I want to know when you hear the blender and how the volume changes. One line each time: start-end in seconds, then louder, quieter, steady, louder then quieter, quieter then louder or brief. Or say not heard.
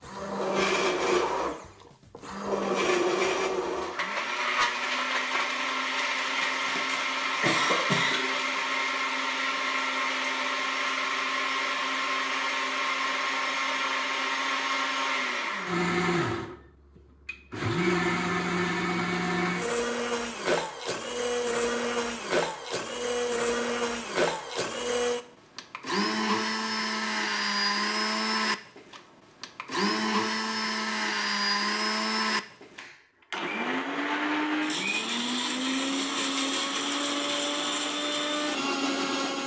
0.0-39.4 steady.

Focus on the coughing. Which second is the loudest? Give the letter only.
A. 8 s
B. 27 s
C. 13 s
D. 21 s
A.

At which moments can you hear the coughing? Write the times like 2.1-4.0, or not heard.
6.4-8.2.